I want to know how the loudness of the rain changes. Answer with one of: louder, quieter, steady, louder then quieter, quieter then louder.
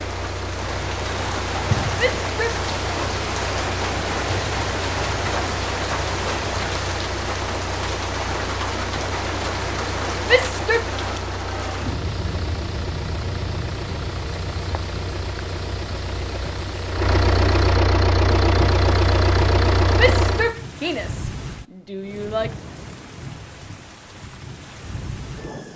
quieter.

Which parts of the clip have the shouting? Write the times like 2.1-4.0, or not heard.
1.9-2.6, 10.2-10.8, 19.9-22.5.